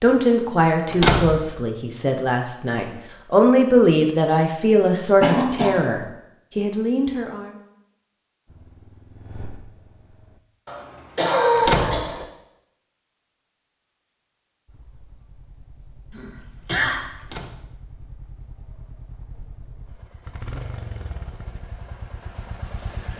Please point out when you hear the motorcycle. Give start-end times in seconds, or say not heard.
8.4-10.4, 14.7-23.1.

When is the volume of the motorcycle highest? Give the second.
21 s.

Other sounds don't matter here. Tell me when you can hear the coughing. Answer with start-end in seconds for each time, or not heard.
5.2-5.8, 10.7-12.2, 16.1-17.0.